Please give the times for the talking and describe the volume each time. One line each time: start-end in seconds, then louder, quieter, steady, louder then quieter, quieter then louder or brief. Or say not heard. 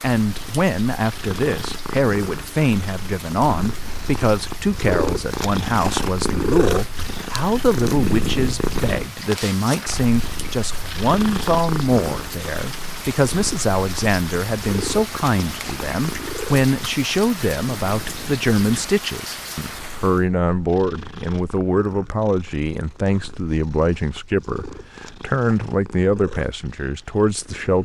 0.0-27.8 steady.